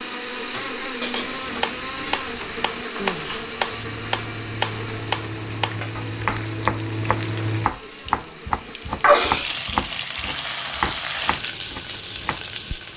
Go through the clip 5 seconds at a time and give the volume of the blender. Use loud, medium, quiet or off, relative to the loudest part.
loud, medium, off.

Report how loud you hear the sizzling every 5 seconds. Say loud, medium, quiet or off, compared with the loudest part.
medium, loud, loud.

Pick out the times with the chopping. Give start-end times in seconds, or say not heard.
1.1-12.4.